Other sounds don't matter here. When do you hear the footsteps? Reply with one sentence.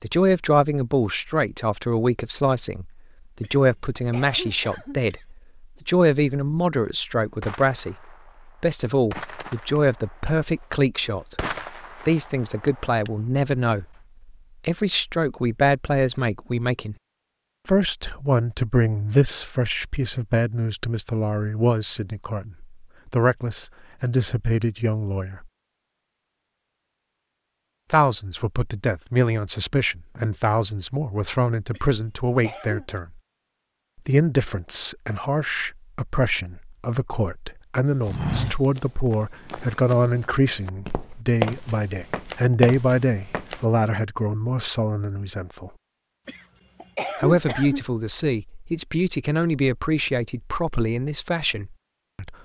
You can hear the footsteps from 38.0 to 43.6 s.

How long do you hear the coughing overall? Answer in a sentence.
You can hear the coughing for 5 seconds altogether.